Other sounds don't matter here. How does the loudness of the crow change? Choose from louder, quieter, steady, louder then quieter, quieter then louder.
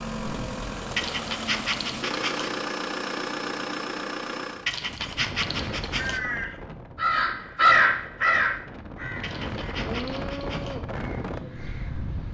louder then quieter.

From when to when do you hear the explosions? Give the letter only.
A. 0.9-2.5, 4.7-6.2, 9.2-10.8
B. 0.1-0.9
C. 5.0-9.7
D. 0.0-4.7
B.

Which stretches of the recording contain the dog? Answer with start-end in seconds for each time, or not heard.
0.9-2.5, 4.7-6.2, 9.2-10.8.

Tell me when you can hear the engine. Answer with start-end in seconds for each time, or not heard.
0.0-4.7.